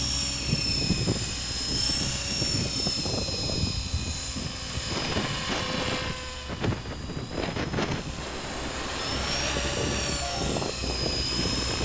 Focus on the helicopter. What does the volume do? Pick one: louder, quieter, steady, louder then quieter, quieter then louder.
quieter then louder.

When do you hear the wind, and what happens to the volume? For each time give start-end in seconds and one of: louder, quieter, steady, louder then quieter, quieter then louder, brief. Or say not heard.
0.0-11.7 steady.